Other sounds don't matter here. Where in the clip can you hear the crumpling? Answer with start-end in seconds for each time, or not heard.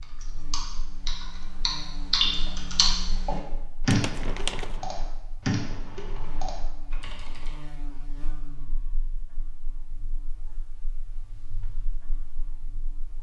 3.9-4.8.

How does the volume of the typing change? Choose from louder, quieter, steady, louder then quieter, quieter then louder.
louder then quieter.